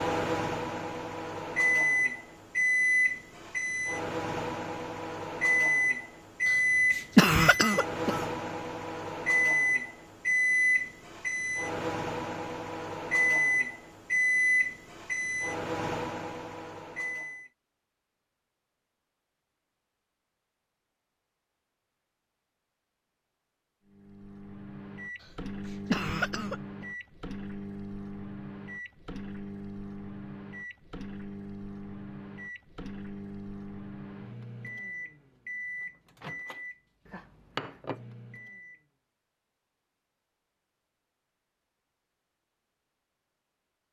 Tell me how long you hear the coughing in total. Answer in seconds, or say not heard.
2 s.